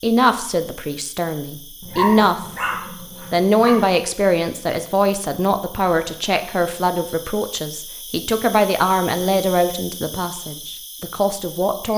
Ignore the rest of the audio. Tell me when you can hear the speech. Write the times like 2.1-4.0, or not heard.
0.0-2.5, 3.3-11.9.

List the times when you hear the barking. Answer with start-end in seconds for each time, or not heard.
1.8-3.9.